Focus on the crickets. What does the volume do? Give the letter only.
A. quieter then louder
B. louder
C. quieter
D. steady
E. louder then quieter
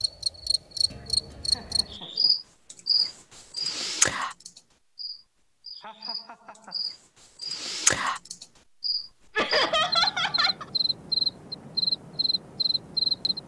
D.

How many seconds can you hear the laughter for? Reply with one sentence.
You can hear the laughter for 4 seconds altogether.